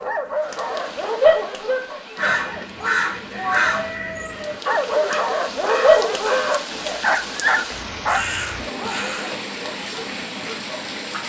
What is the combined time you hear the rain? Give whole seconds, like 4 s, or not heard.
11 s.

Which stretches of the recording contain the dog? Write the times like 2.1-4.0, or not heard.
0.0-2.6, 4.6-11.2.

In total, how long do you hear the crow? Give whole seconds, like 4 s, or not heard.
7 s.